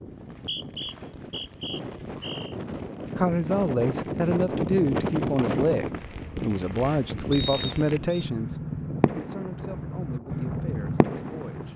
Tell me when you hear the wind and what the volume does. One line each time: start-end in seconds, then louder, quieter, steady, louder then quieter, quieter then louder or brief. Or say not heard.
0.0-11.7 louder then quieter.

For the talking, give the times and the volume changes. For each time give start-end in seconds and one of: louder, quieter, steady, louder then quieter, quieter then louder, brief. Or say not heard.
3.1-11.7 quieter.